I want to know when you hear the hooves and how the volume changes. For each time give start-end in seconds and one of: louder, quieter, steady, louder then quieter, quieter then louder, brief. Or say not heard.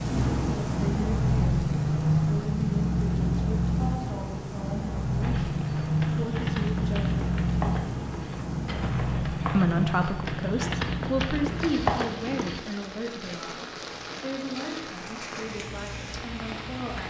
5.2-12.6 louder.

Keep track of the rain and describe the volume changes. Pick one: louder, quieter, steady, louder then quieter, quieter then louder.
quieter.